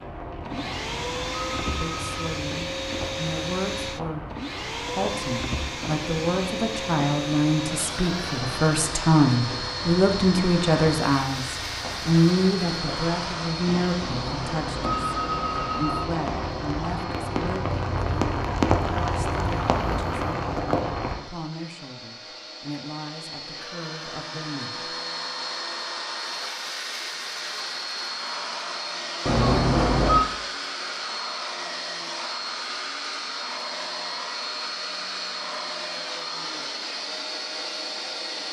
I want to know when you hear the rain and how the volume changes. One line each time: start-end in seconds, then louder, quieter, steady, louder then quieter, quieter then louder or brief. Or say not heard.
0.0-21.1 louder.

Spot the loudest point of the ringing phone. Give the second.
30 s.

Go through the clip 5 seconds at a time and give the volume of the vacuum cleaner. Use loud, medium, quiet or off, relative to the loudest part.
loud, loud, loud, medium, medium, loud, loud, loud.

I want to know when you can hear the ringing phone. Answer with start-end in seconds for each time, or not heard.
0.6-2.1, 14.0-16.0, 29.2-30.2.